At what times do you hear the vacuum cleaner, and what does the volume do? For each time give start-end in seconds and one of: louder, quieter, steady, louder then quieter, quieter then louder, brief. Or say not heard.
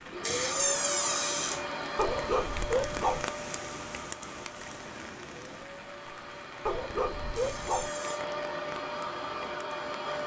0.0-10.2 quieter then louder.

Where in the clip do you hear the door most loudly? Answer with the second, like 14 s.
1 s.